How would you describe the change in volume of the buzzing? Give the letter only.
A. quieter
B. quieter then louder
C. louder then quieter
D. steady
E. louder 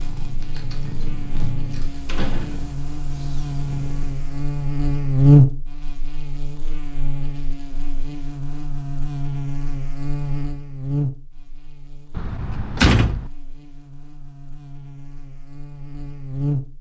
C.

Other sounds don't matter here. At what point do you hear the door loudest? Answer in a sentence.
The volume of the door peaks at 13 seconds.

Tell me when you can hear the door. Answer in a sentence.
You can hear the door from 2.0 to 2.8 s and from 12.2 to 13.3 s.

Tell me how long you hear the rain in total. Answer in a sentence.
The rain can't be heard in this clip.